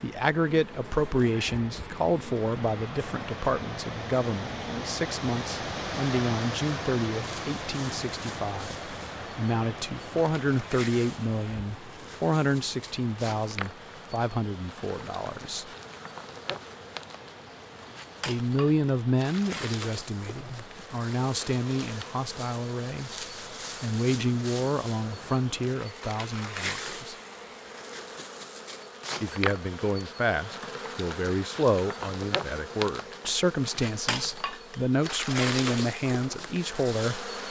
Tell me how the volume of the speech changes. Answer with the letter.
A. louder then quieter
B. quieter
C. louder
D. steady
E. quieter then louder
D.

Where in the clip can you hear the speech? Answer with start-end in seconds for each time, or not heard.
0.0-15.7, 18.2-27.1, 29.2-37.3.